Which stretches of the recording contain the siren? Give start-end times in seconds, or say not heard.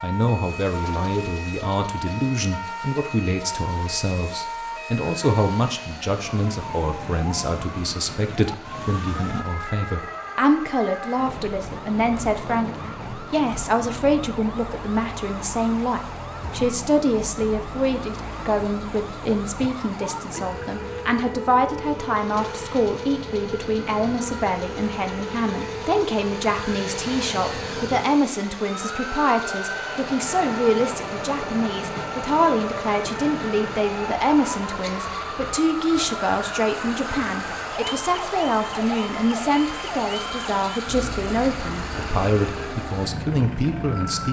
0.0-44.2.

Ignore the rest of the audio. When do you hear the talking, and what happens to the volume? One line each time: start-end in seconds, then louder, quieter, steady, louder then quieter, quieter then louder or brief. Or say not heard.
0.0-44.2 steady.